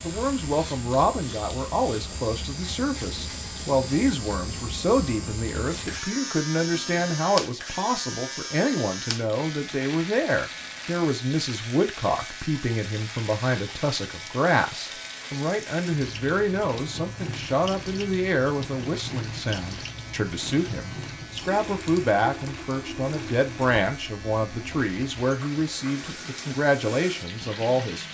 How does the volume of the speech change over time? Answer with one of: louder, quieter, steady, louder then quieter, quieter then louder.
steady.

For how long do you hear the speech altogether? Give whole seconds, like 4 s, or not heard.
28 s.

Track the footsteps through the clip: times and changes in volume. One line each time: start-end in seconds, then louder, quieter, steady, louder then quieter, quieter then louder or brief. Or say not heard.
not heard.